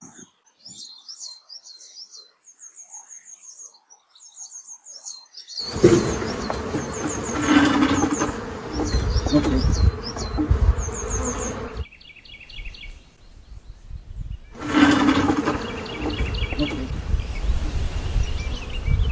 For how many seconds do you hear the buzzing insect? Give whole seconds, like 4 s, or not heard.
11 s.